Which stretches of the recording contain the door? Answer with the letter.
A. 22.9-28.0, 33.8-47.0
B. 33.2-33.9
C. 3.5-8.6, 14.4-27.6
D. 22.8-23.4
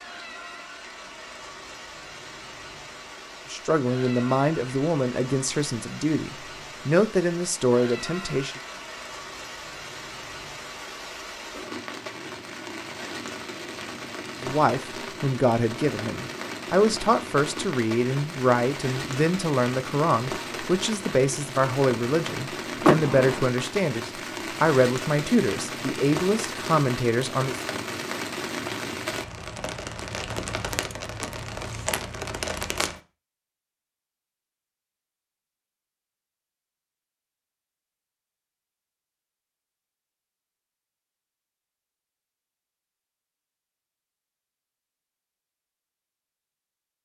D.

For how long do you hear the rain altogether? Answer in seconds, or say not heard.
33 s.